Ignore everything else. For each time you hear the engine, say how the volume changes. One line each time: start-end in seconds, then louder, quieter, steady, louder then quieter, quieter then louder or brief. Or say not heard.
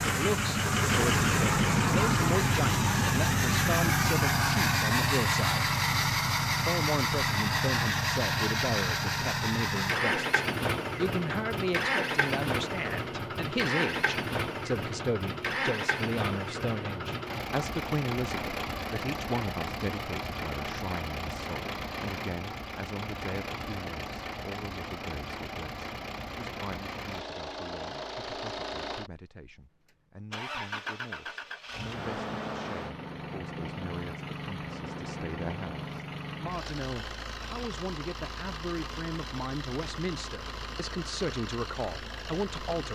0.0-42.9 quieter.